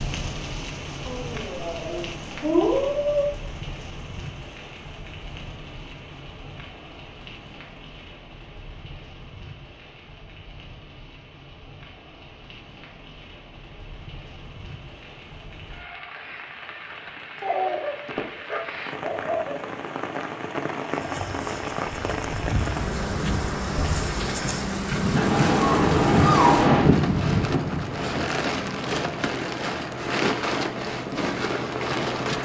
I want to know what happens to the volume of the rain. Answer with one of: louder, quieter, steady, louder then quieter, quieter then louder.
quieter then louder.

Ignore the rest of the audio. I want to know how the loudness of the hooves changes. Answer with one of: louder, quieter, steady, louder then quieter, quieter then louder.
louder.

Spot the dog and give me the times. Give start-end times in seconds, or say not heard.
1.1-3.3, 17.4-19.8, 25.1-26.9.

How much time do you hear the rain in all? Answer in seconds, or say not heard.
32 s.